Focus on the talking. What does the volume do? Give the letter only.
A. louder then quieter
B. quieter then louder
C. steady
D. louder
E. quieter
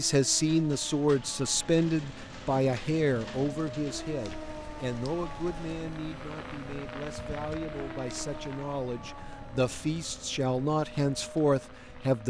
B.